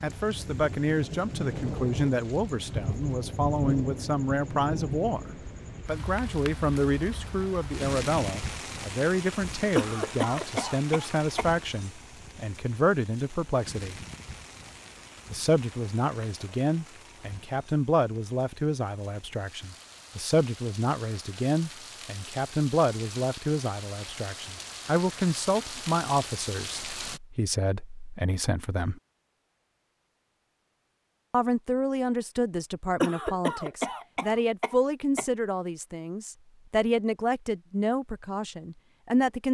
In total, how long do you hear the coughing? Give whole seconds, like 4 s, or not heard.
4 s.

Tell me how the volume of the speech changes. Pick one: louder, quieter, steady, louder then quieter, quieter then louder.
steady.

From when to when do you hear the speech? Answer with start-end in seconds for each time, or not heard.
0.0-13.9, 15.3-29.0, 31.3-39.4.